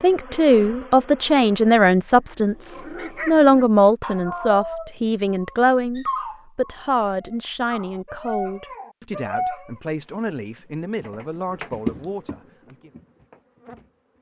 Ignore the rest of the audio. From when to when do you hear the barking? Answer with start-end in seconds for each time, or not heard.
2.4-9.7.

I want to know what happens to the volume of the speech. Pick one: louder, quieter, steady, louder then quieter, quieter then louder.
quieter.